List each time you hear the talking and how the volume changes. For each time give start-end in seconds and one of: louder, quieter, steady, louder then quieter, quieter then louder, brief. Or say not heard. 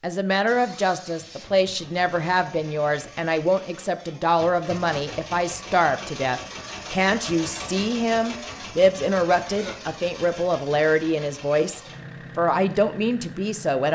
0.0-13.9 steady.